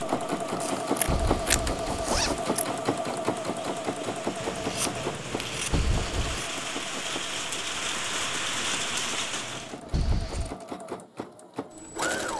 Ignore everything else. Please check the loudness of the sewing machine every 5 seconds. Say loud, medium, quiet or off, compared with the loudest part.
loud, medium, medium.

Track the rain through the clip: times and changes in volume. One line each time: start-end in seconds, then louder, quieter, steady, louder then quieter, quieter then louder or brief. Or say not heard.
0.0-9.8 louder.